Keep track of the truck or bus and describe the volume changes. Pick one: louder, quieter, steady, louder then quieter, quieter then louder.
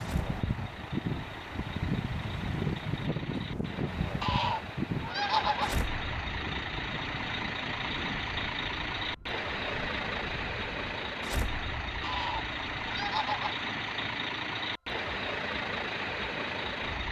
louder.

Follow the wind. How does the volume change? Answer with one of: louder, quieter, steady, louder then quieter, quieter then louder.
quieter.